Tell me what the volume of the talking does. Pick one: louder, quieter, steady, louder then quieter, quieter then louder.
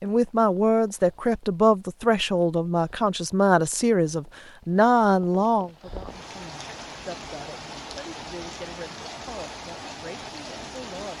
quieter.